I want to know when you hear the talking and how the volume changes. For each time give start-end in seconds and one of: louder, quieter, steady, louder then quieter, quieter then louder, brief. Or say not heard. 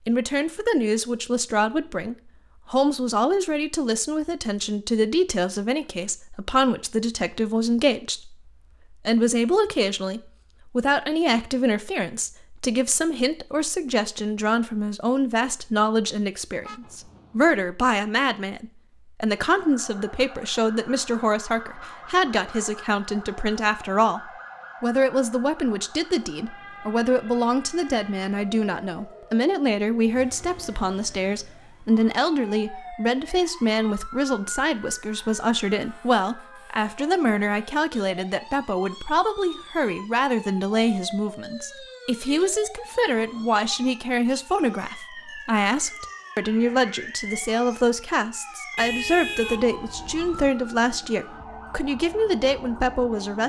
0.1-53.4 steady.